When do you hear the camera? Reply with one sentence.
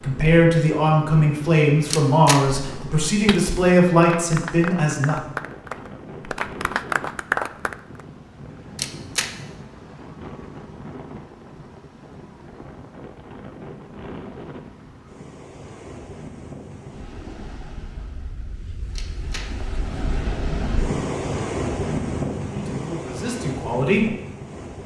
You can hear the camera from 1.9 to 2.4 s, from 8.8 to 9.3 s and from 18.9 to 19.4 s.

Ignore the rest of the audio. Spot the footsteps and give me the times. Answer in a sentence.
The footsteps can't be heard in this clip.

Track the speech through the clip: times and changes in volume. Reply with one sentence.
You can hear the speech from 0.0 to 5.2 s, at a steady volume; and briefly from 22.5 to 24.1 s.